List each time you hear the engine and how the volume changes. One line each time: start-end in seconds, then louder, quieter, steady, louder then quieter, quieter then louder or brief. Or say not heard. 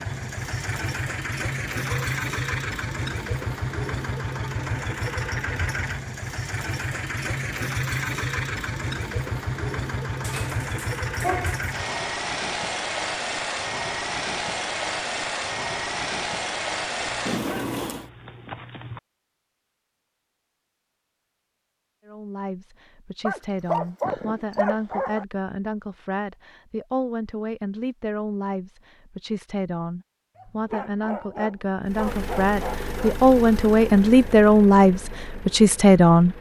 0.0-18.1 steady
31.9-36.3 quieter.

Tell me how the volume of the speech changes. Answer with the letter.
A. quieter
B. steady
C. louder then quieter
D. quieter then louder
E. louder
E.